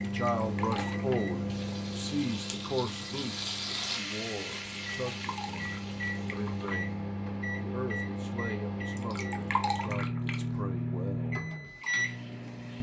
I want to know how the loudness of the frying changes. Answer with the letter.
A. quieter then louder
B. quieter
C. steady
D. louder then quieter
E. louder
D.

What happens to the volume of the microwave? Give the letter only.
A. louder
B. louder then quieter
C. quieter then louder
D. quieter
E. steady
C.